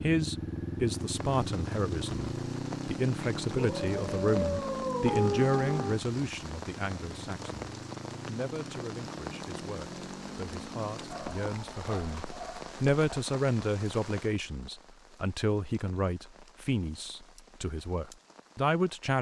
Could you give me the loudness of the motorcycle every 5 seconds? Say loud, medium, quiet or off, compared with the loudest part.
loud, medium, medium, off.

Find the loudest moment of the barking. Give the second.
5 s.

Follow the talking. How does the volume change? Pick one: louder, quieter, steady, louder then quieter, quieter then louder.
quieter then louder.